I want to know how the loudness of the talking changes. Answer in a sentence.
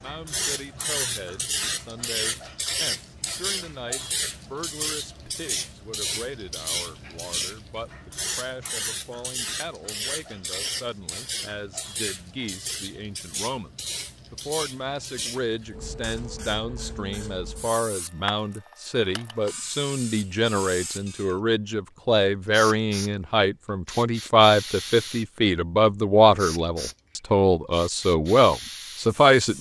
The loudness of the talking goes up.